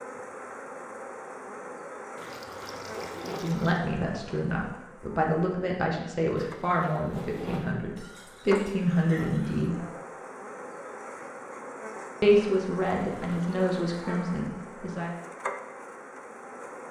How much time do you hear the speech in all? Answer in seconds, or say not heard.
9 s.